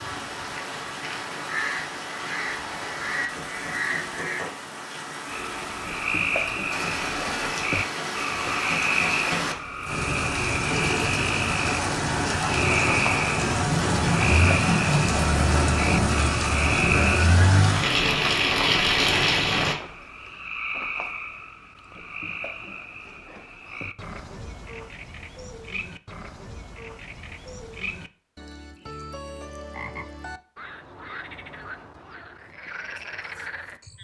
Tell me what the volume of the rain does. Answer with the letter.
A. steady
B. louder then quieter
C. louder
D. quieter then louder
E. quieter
C.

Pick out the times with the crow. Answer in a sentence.
You can hear the crow from 0.0 to 4.5 s.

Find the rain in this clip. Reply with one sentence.
The rain can be heard from 0.0 to 19.8 s.